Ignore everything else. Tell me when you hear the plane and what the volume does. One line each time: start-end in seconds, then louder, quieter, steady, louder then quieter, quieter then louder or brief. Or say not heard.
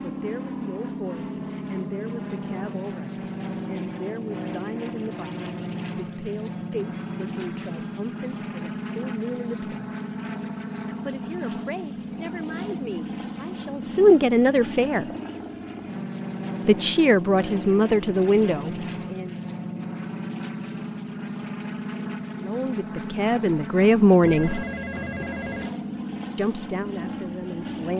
0.0-27.9 steady.